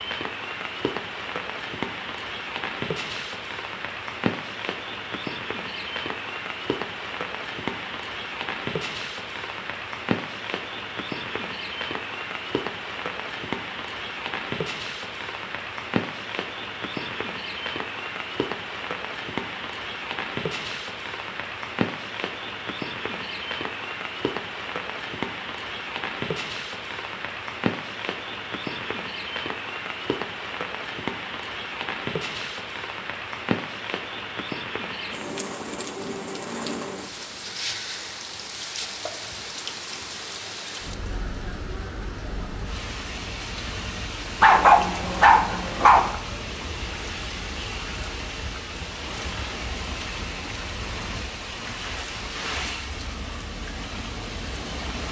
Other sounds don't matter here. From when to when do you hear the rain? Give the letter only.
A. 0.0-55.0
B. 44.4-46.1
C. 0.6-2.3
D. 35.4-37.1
A.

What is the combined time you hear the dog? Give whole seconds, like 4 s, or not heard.
2 s.